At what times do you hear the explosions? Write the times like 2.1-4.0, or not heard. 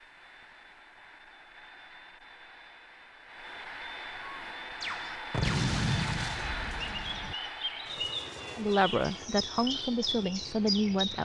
5.3-7.3.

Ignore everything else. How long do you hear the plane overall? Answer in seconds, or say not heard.
11 s.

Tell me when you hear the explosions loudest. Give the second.
6 s.